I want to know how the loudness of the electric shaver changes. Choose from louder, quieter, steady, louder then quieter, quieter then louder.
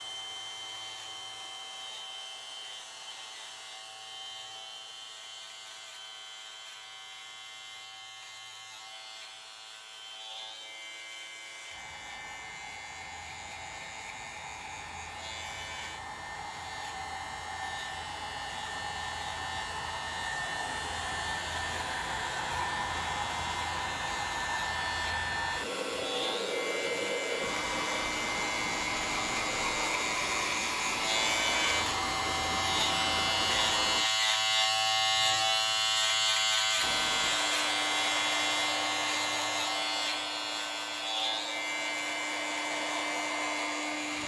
louder.